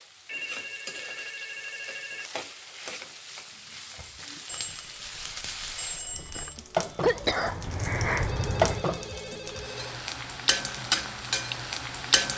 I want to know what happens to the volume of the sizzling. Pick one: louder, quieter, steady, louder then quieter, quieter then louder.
louder.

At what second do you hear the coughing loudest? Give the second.
7 s.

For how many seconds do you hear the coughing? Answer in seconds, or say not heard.
2 s.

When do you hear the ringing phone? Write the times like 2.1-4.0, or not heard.
0.2-2.3, 4.5-6.5, 8.2-10.0.